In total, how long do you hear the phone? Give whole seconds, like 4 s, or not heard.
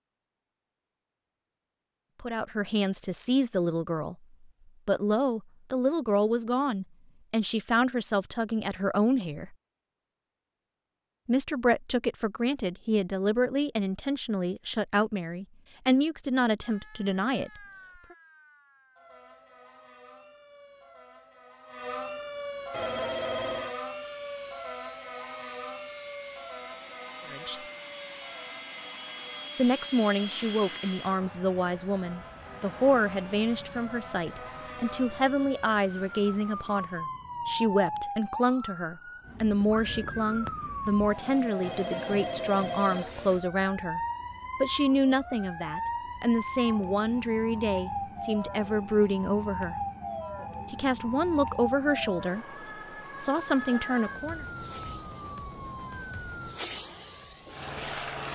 3 s.